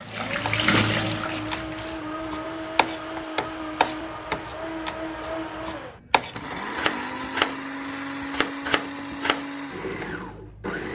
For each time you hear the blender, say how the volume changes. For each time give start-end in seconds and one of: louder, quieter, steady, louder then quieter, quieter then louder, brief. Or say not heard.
0.0-10.9 steady.